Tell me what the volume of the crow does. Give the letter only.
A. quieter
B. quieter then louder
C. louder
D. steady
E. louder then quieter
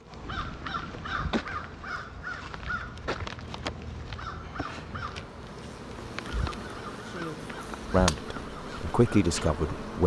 A.